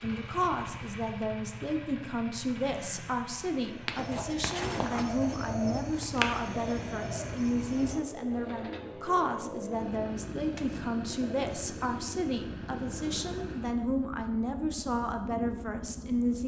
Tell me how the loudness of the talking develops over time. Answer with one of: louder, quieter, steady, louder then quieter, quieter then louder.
steady.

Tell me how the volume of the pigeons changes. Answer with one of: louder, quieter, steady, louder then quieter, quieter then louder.
quieter.